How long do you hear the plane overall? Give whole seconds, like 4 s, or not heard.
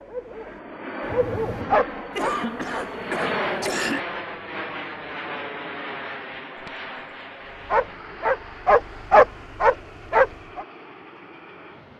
12 s.